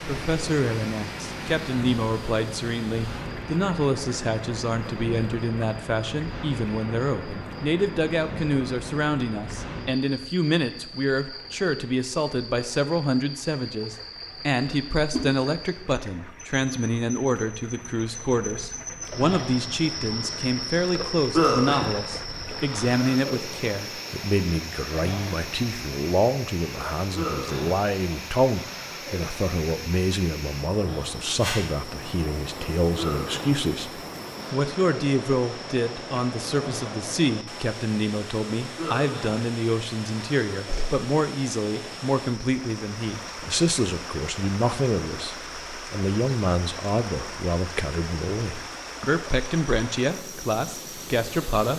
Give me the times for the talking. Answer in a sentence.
You can hear the talking from 0.0 to 51.7 s.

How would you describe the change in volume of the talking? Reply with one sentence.
The volume of the talking stays about the same.